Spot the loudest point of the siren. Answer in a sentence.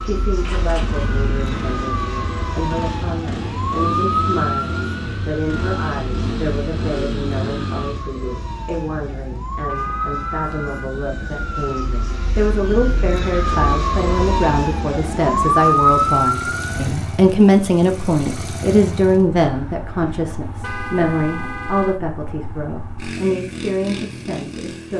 The volume of the siren peaks at 16 seconds.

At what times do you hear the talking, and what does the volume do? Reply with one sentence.
You can hear the talking from 0.0 to 24.9 s, getting louder then quieter.